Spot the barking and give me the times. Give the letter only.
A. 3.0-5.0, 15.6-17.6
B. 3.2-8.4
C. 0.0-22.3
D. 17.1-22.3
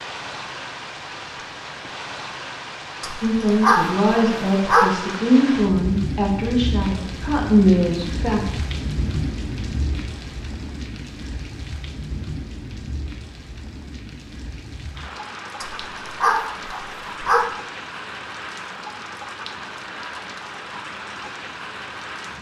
A.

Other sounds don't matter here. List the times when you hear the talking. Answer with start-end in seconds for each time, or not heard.
3.2-8.4.